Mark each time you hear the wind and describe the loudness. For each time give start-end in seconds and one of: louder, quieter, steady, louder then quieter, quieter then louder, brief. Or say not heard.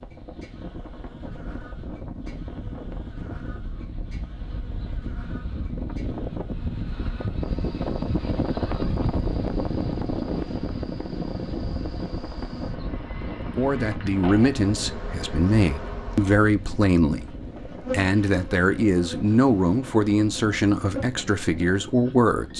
0.0-22.5 louder then quieter.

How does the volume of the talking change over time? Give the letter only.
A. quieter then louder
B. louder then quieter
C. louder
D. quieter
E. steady
E.